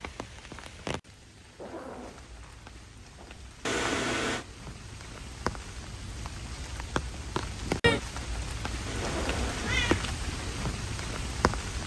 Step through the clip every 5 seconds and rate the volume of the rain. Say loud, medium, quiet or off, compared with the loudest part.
quiet, loud, loud.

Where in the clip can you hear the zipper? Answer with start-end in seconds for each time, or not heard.
1.5-3.4, 8.9-9.7.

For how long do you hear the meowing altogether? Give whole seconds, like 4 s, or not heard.
2 s.